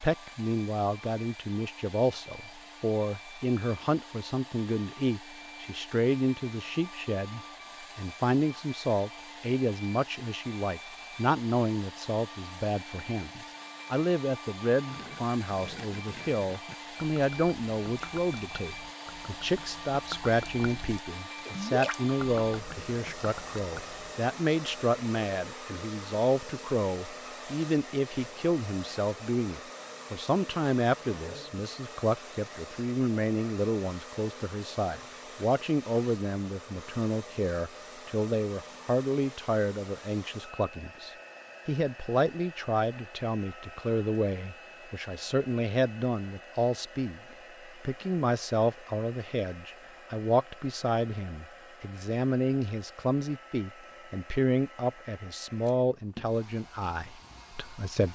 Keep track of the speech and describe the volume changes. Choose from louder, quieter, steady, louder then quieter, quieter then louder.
steady.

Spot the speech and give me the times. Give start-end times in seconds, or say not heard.
0.0-58.1.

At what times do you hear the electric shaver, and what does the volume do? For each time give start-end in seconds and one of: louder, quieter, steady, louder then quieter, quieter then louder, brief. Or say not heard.
not heard.